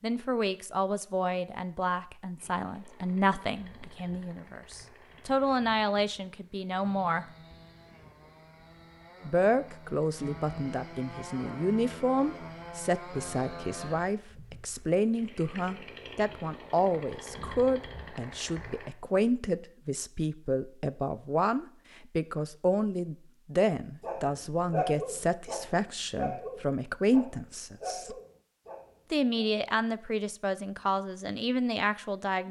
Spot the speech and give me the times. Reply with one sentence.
You can hear the speech from 0.0 to 7.2 s, from 9.2 to 28.1 s and from 29.1 to 32.4 s.